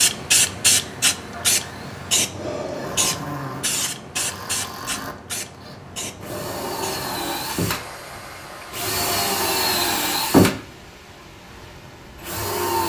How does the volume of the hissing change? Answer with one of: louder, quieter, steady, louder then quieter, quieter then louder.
quieter.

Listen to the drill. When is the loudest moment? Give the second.
10 s.